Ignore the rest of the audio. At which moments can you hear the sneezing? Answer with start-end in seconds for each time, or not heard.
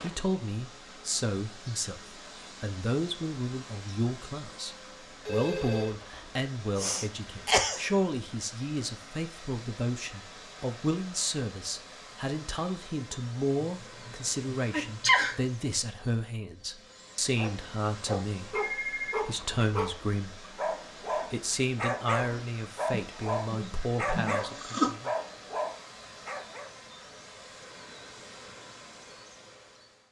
6.8-7.9, 13.6-15.3, 22.9-24.9.